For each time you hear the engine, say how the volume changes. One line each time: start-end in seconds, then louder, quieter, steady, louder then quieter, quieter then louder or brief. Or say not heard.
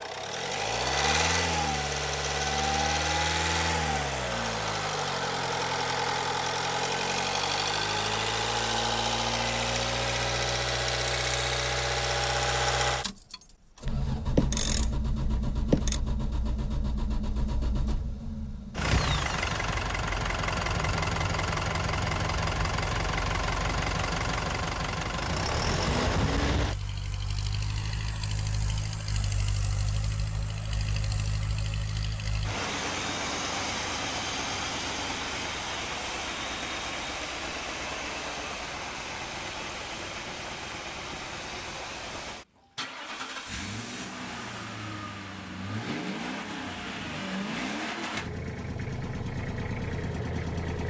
0.0-50.8 quieter.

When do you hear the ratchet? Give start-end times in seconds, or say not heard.
13.8-16.0.